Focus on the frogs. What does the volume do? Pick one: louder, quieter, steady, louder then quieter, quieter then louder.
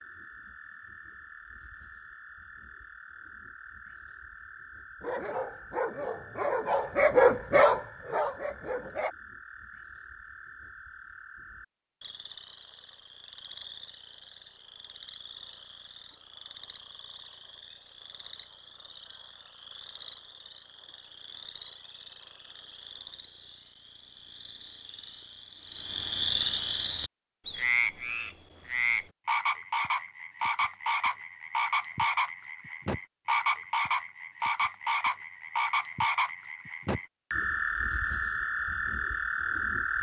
louder.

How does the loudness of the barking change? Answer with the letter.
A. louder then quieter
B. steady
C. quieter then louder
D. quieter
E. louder
A.